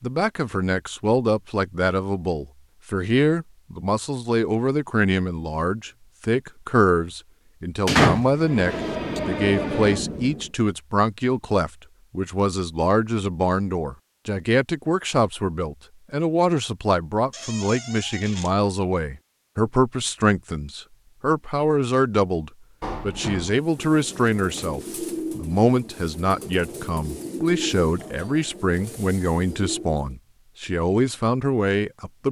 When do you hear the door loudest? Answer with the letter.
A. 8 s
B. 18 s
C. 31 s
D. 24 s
A.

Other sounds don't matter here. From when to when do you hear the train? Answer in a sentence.
The train can be heard from 8.3 to 10.6 s.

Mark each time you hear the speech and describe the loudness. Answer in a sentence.
The speech can be heard from 0.0 to 32.2 s, at a steady volume.